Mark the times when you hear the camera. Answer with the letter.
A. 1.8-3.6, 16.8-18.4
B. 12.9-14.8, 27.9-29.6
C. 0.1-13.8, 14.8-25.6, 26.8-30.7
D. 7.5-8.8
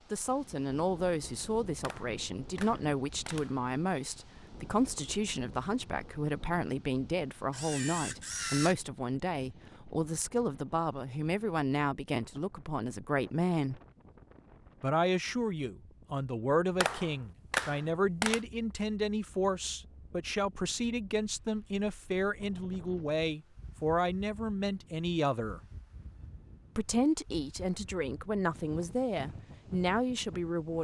D.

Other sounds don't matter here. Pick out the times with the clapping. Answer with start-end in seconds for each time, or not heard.
1.8-3.6, 16.8-18.4.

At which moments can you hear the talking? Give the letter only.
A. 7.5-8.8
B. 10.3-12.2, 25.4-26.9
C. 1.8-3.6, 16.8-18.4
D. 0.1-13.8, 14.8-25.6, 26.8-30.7
D.